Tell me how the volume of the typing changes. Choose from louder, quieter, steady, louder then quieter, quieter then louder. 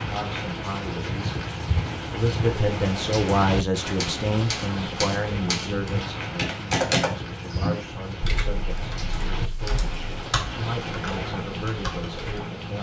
louder then quieter.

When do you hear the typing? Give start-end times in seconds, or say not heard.
3.8-12.4.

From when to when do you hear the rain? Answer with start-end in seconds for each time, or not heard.
0.0-12.7.